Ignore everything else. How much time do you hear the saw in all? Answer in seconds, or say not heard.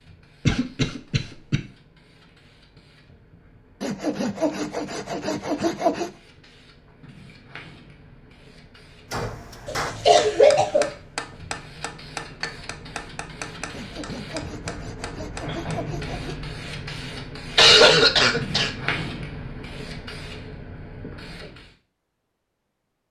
5 s.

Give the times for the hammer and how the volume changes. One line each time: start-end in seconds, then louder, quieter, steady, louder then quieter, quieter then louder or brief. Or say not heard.
9.1-16.1 quieter.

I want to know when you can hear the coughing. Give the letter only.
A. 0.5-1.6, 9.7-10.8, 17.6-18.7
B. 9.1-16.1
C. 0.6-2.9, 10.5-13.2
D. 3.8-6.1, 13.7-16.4
A.